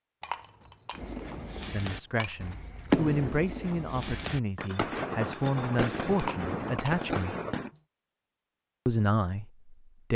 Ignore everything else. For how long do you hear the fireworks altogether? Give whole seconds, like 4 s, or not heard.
7 s.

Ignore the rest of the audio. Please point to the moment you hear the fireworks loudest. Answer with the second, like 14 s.
3 s.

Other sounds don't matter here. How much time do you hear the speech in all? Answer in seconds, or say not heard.
7 s.